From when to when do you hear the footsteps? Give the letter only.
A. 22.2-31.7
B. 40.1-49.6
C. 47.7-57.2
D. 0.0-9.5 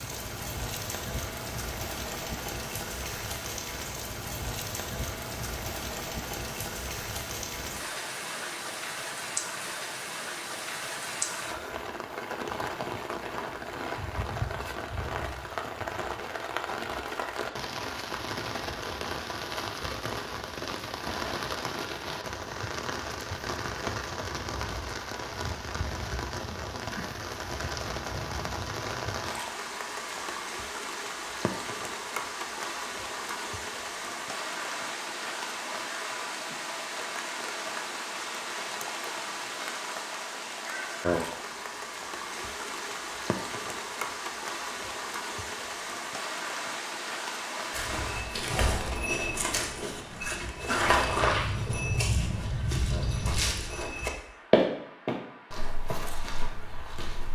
C.